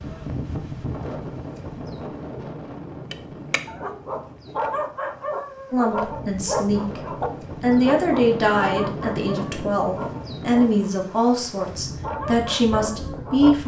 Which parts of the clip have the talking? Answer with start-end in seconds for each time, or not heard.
5.7-13.6.